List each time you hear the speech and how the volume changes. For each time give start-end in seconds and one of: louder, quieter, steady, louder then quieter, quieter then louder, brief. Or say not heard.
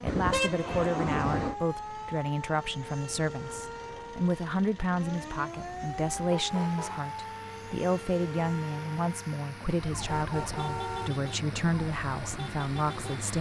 0.0-13.3 steady.